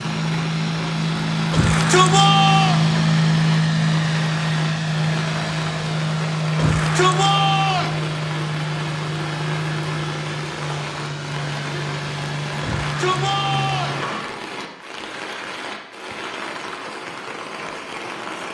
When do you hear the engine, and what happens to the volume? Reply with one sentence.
The engine can be heard from 0.0 to 14.2 s, getting quieter.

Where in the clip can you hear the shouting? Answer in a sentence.
You can hear the shouting from 1.5 to 2.8 s, from 6.5 to 8.0 s and from 12.6 to 14.0 s.